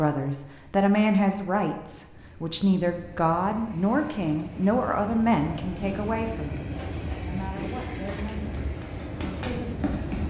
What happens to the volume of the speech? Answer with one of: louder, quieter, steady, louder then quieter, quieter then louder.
quieter.